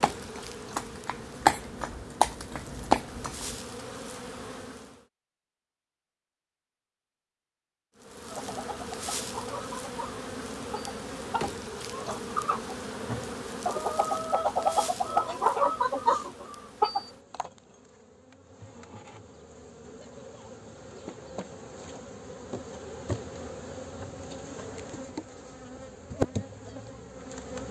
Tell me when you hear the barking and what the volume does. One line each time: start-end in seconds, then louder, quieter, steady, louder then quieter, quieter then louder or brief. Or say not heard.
not heard.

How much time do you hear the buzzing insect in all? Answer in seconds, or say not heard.
25 s.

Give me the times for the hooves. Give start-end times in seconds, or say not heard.
0.0-3.6.